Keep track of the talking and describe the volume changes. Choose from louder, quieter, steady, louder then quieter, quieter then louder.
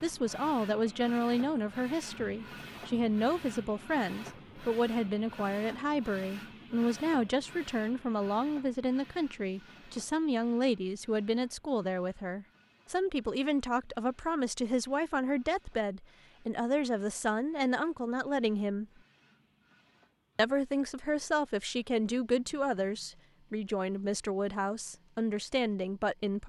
steady.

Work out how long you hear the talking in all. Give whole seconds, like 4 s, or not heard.
25 s.